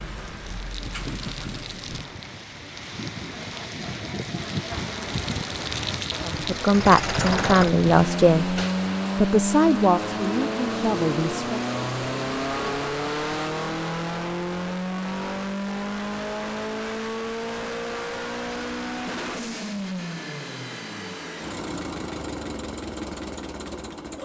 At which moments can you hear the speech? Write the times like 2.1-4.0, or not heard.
6.2-11.6.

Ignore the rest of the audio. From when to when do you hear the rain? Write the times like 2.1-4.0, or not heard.
0.0-13.3.